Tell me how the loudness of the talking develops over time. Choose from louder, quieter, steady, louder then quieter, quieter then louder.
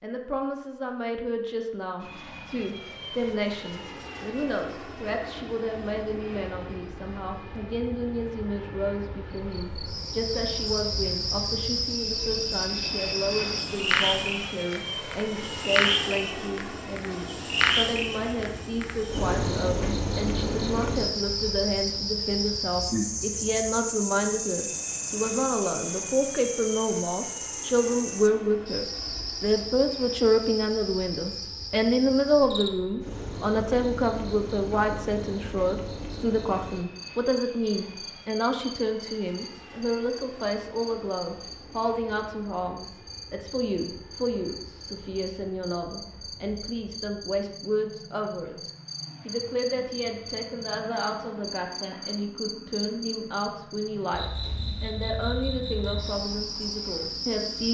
louder then quieter.